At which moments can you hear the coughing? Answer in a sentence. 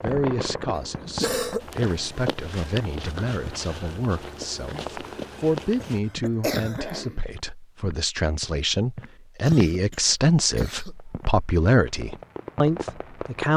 The coughing can be heard from 0.8 to 1.6 s, from 5.8 to 7.2 s and from 9.4 to 10.9 s.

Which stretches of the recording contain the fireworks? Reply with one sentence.
The fireworks can be heard from 0.0 to 1.6 s and from 10.9 to 13.5 s.